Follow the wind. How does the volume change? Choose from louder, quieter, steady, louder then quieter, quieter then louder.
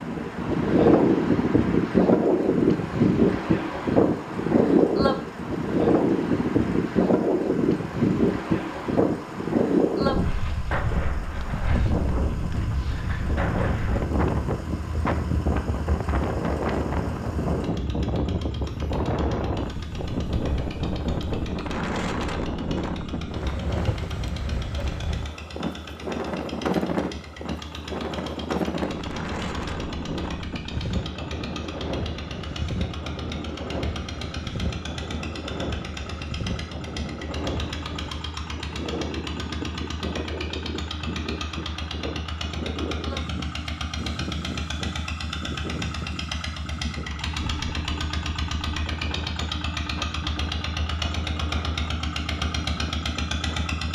quieter.